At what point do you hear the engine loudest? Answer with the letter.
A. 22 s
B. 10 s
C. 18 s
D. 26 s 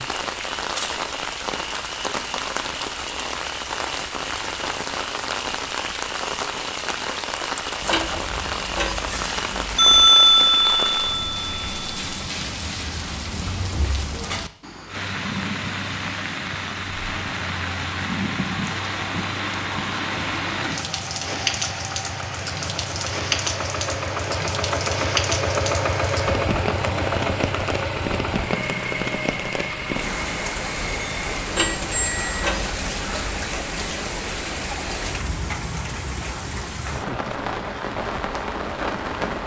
D.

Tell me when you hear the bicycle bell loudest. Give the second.
10 s.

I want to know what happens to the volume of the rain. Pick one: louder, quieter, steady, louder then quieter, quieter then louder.
steady.